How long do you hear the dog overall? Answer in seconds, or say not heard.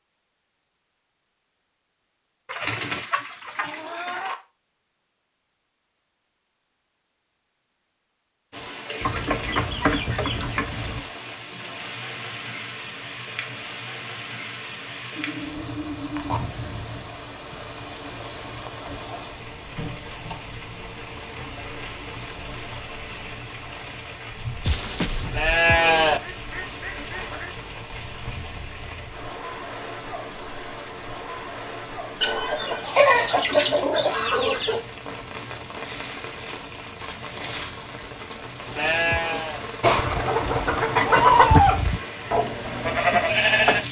not heard.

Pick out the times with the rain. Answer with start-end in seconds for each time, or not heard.
8.5-43.8.